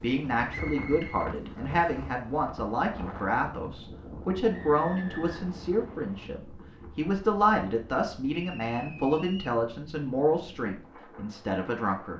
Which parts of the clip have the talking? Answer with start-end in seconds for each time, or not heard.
0.0-12.1.